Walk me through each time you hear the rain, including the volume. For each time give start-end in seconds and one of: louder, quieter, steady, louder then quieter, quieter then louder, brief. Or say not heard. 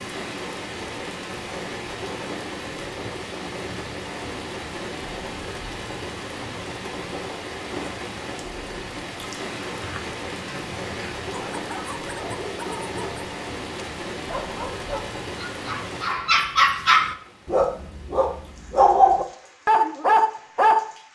0.0-21.1 quieter.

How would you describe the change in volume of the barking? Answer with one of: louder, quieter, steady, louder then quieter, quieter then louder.
louder.